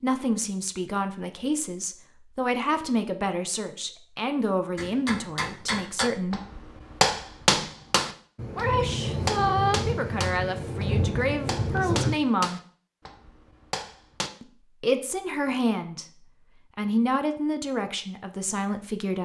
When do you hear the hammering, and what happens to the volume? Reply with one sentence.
You can hear the hammering from 4.8 to 14.3 s, getting louder then quieter.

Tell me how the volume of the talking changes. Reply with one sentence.
The loudness of the talking stays about the same.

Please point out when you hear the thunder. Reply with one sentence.
You can hear the thunder from 8.3 to 12.2 s.